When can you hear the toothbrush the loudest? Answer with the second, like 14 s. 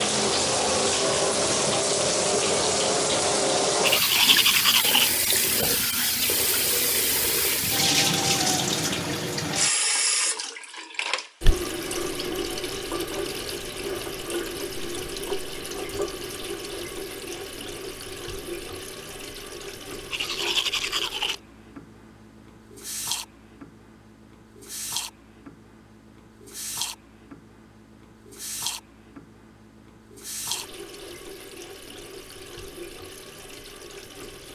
4 s.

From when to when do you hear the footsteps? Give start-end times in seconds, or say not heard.
not heard.